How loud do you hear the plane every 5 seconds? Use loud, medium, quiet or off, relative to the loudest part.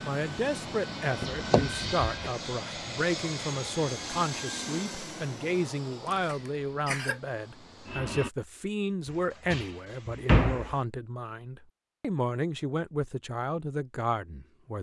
loud, medium, off.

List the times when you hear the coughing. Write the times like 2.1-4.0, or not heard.
6.0-7.2.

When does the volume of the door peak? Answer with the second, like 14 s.
10 s.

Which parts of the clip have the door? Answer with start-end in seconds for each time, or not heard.
1.2-2.1, 9.1-10.8.